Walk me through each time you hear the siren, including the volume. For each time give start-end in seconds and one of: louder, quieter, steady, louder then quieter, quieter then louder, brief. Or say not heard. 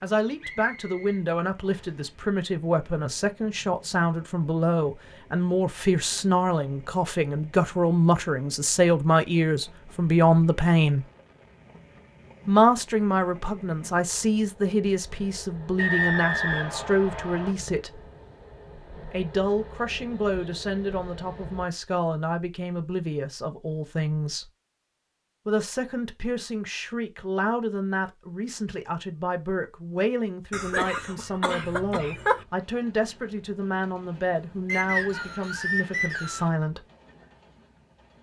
not heard.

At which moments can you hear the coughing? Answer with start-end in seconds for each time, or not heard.
30.5-32.5.